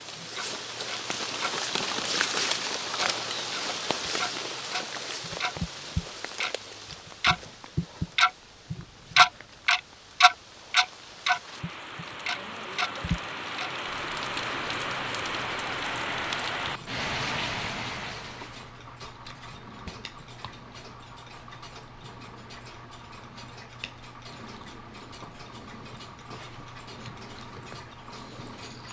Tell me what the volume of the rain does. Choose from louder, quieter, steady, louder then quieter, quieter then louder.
quieter then louder.